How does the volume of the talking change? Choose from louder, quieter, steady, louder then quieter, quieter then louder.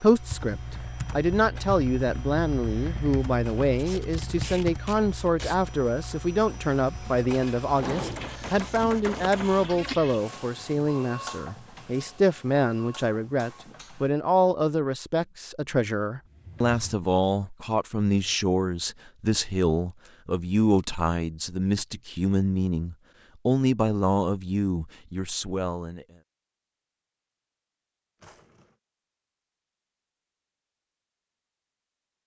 steady.